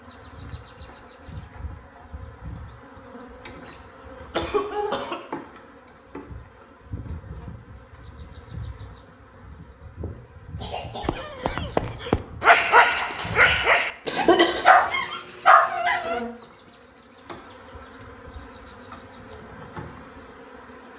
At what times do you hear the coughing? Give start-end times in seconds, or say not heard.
4.3-5.2, 10.6-11.2, 14.1-14.7.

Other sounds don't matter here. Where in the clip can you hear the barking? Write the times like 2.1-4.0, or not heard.
11.0-16.2.